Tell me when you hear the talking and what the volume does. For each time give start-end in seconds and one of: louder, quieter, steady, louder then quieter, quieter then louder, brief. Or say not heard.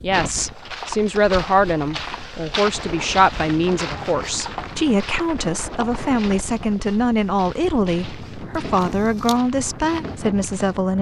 0.0-10.9 steady.